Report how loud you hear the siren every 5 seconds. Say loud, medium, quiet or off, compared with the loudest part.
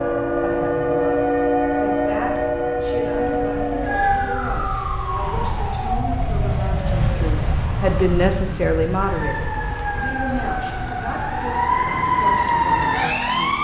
loud, medium, loud.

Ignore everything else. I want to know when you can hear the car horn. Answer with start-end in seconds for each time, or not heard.
not heard.